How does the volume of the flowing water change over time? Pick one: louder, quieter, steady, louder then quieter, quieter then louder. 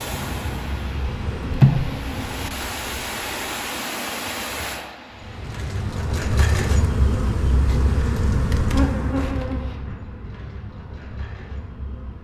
louder then quieter.